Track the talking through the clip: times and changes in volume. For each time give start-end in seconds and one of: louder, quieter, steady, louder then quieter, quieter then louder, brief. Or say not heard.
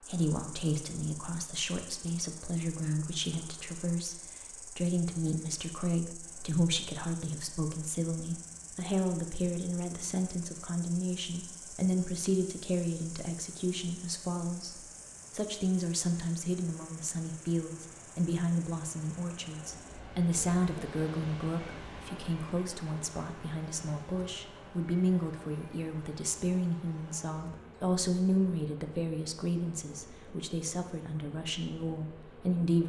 0.0-32.8 steady.